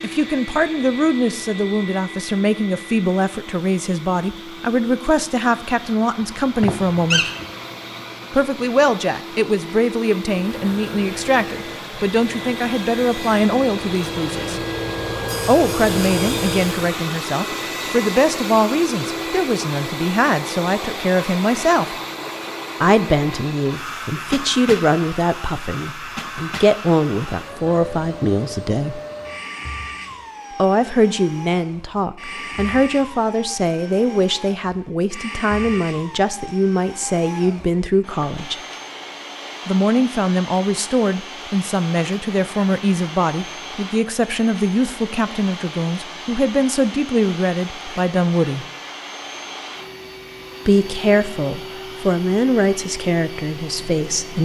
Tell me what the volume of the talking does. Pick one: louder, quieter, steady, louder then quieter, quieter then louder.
steady.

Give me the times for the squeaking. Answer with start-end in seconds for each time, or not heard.
6.2-7.5.